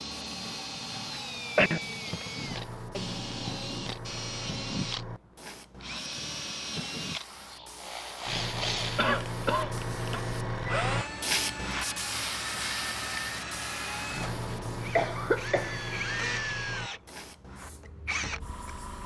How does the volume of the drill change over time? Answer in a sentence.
The volume of the drill stays about the same.